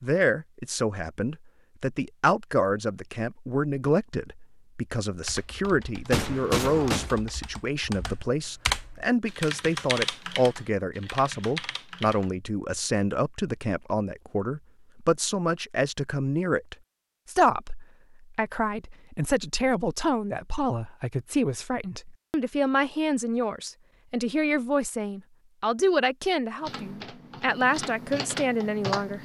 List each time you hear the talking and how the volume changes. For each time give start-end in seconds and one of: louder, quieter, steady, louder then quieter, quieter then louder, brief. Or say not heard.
0.0-29.2 steady.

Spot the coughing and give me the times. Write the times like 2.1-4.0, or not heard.
6.1-7.1.